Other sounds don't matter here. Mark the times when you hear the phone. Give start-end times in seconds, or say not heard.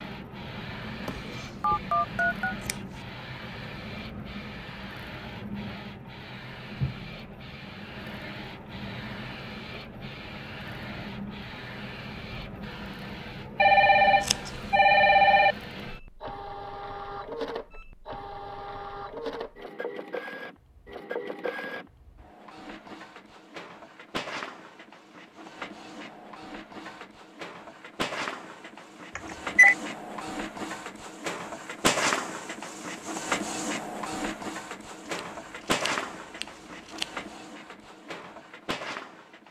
1.6-2.5, 13.6-15.6, 29.1-29.8.